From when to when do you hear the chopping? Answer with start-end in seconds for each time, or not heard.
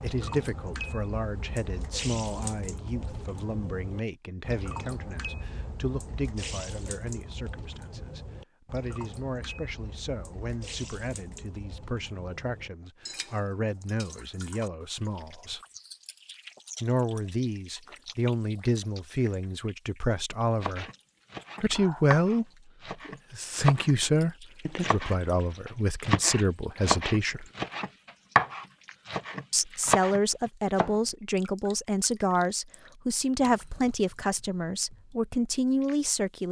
20.6-23.9, 24.6-30.9.